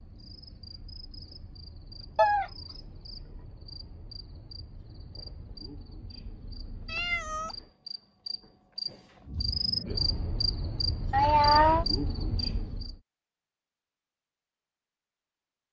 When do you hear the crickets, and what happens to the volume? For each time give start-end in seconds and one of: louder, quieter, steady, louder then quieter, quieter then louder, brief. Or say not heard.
0.0-12.9 louder.